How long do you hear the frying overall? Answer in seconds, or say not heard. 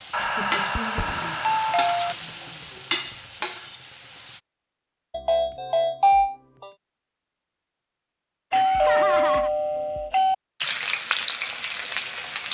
6 s.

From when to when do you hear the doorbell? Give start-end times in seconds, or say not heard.
0.1-2.1, 5.1-6.7, 8.5-10.3.